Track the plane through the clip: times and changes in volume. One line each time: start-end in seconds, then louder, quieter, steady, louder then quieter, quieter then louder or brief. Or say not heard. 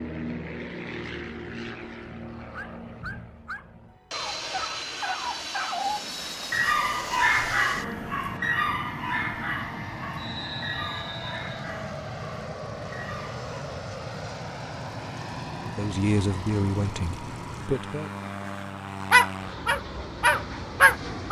0.0-21.2 steady.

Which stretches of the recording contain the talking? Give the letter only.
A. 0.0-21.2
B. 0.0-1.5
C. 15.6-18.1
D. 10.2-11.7
C.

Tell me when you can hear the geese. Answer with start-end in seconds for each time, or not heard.
not heard.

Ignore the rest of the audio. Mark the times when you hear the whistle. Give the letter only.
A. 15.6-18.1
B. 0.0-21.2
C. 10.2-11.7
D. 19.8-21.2
C.